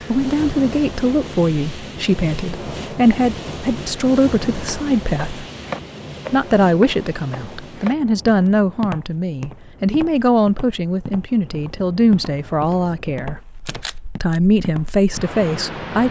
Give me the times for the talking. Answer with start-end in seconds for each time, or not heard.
0.1-5.5, 6.3-13.4, 14.2-16.0.